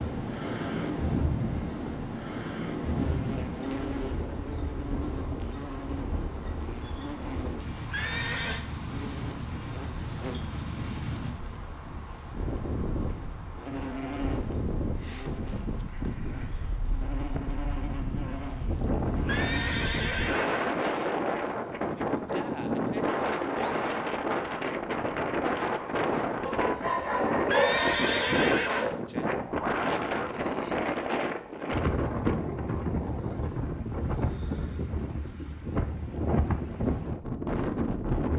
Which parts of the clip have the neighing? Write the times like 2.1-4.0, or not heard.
7.9-8.7, 19.2-21.0, 27.4-28.9.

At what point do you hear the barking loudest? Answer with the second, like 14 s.
28 s.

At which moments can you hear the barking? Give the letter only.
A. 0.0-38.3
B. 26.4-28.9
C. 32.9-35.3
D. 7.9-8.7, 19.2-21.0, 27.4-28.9
B.